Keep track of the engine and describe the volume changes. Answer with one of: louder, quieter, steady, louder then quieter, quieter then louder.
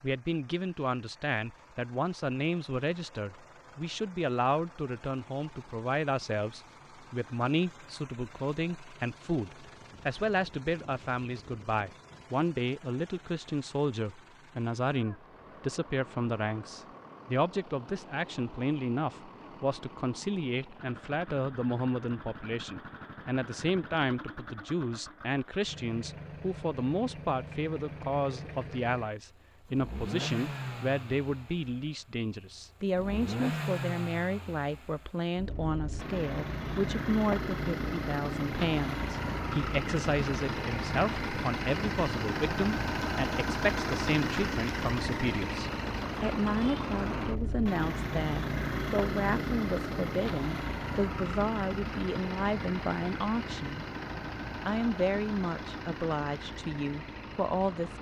louder.